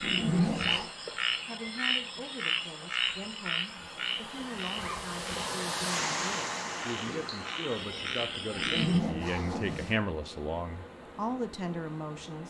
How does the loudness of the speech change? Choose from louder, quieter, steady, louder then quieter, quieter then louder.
louder.